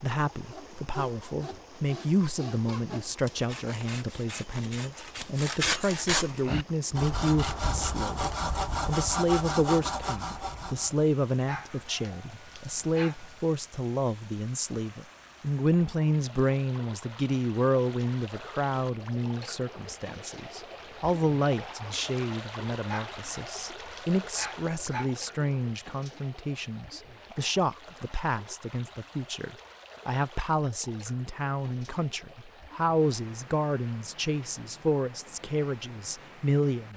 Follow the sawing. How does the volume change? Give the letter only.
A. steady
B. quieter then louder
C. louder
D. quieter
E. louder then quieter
C.